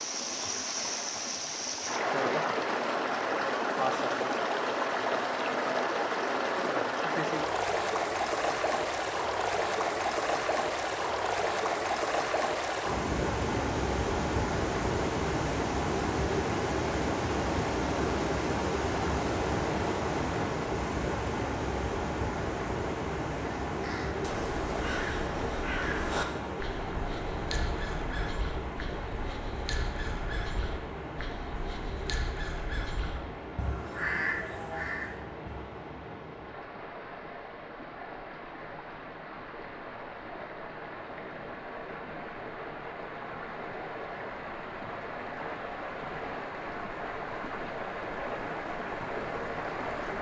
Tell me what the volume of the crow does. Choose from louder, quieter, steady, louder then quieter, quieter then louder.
quieter then louder.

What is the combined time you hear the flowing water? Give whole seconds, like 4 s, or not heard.
50 s.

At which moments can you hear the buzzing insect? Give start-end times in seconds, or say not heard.
not heard.